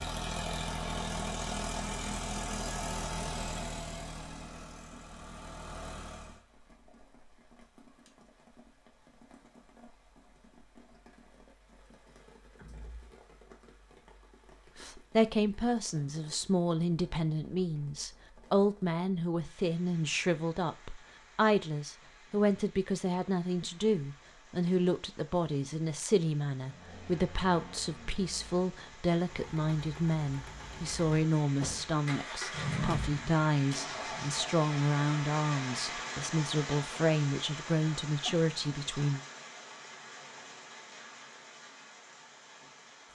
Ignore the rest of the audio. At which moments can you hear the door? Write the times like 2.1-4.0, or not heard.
12.6-13.2.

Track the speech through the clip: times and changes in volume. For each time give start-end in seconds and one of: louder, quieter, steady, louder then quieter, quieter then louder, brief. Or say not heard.
14.8-39.2 steady.